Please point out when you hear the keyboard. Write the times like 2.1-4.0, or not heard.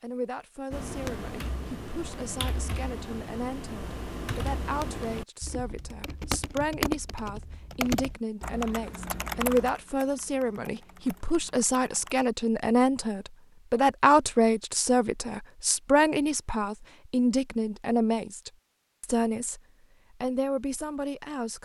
0.7-12.2.